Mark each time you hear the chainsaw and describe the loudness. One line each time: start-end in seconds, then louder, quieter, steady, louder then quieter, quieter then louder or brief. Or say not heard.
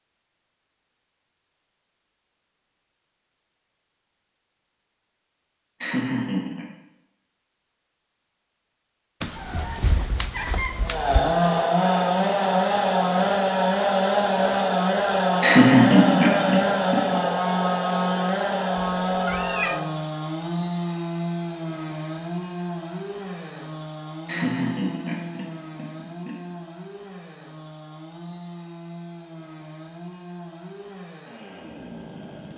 10.8-32.5 quieter.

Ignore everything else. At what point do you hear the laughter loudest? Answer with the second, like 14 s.
16 s.